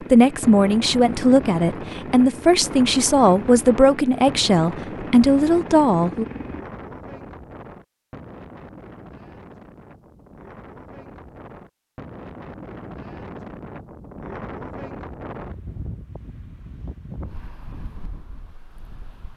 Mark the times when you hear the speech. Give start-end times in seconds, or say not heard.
0.1-6.2.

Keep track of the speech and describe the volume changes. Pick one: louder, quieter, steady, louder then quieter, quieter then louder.
steady.